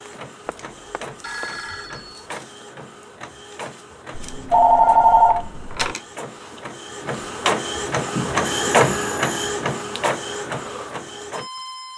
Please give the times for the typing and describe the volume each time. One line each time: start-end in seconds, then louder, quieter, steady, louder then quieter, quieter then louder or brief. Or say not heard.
not heard.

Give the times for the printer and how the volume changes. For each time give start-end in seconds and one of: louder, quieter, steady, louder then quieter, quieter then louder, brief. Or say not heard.
0.0-11.9 louder then quieter.